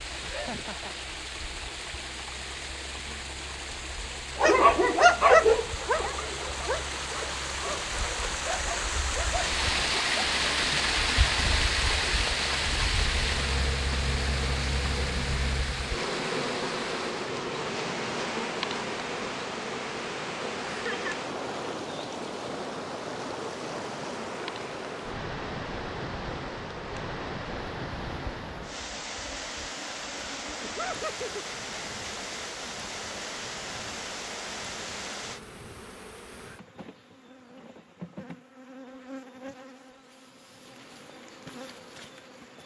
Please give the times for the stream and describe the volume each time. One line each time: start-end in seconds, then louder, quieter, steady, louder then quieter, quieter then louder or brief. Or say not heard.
0.0-35.4 louder then quieter.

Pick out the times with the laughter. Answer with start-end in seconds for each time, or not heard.
0.2-0.9, 20.7-21.1, 30.6-31.4.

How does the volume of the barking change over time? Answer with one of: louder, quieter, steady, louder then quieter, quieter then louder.
quieter.